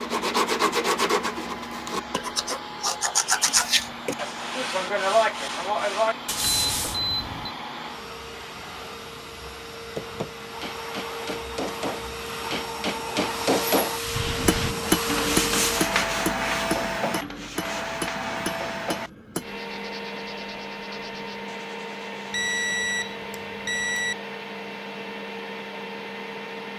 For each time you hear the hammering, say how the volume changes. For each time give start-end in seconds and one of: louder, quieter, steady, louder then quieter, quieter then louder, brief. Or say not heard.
9.9-19.6 louder then quieter.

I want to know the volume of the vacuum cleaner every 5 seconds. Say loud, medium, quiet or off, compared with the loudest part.
medium, medium, loud, loud, medium, medium.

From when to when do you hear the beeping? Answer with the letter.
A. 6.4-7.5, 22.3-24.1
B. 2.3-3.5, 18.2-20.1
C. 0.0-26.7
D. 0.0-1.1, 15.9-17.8
A.